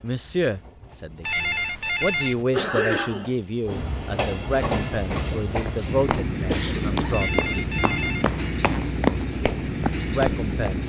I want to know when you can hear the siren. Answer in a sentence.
The siren can't be heard in this clip.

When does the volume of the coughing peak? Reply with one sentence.
The loudest moment of the coughing is at 3 seconds.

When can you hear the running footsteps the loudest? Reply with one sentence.
The volume of the running footsteps peaks at 9 seconds.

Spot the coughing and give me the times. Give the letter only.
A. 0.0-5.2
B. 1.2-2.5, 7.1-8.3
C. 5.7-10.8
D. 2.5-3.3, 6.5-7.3
D.